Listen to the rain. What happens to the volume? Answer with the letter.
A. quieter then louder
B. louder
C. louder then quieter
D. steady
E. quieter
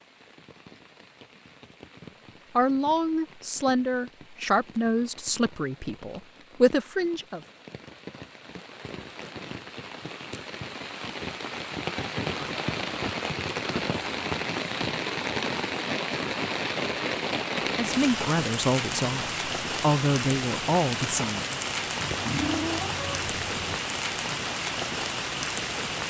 B.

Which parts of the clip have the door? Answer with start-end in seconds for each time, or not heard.
not heard.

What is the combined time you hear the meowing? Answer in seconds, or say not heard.
2 s.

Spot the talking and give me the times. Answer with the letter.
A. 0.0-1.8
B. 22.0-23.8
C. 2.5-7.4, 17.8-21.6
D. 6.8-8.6
C.